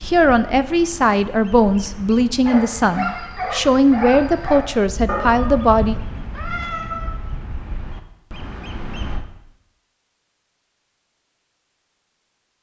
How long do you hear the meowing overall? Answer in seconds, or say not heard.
2 s.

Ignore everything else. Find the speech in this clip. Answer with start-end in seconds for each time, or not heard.
0.0-6.0.